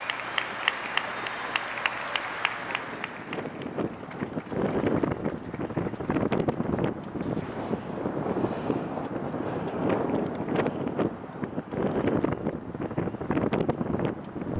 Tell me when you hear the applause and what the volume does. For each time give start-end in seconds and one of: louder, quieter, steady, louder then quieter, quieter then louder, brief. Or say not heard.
0.0-7.8 quieter.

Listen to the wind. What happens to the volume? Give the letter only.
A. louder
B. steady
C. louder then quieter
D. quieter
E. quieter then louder
A.